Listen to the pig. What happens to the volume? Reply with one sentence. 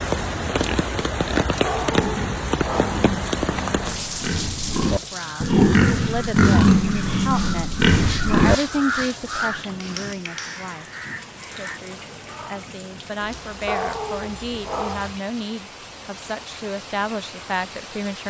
The volume of the pig goes up.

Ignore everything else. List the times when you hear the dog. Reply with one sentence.
The dog can be heard from 1.6 to 3.1 s and from 13.7 to 15.1 s.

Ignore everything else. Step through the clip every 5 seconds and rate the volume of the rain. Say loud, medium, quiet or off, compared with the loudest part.
loud, quiet, quiet, quiet.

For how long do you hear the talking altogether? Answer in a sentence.
The talking can be heard for 13 seconds in total.